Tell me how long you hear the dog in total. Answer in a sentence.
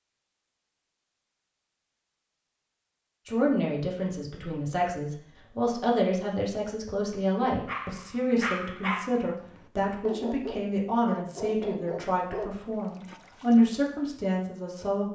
You can hear the dog for 6 seconds altogether.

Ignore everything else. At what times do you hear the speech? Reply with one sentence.
You can hear the speech from 3.2 to 15.0 s.